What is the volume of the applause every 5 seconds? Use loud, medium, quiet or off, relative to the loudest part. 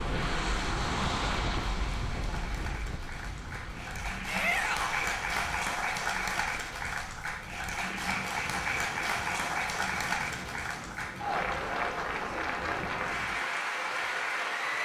medium, loud, loud.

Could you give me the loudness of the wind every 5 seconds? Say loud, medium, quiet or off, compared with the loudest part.
loud, quiet, medium.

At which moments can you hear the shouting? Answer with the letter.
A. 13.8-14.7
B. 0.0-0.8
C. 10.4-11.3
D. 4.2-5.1
D.